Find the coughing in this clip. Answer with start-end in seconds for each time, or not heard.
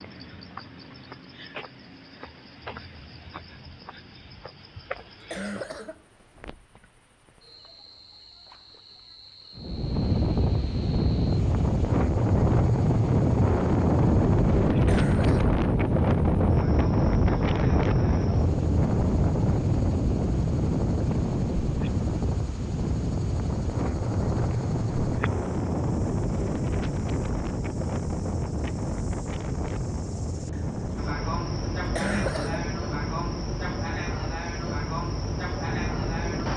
5.0-6.0, 14.7-15.6, 31.8-32.7.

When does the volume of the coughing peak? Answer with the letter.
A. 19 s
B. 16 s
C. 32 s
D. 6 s
C.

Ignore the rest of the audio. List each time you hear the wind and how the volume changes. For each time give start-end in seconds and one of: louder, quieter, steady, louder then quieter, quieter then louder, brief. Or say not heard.
9.6-36.5 quieter.